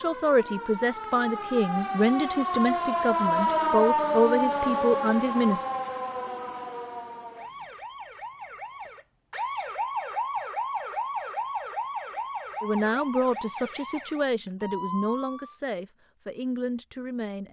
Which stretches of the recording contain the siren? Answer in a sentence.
You can hear the siren from 0.0 to 15.6 s.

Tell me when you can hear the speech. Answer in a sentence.
The speech can be heard from 0.0 to 5.7 s and from 12.6 to 17.4 s.